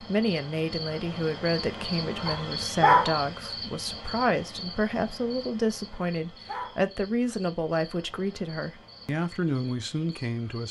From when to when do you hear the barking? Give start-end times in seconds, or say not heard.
2.2-3.1, 5.9-6.8.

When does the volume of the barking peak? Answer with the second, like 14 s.
3 s.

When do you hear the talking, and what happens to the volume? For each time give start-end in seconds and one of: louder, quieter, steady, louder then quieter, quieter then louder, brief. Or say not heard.
0.0-10.6 steady.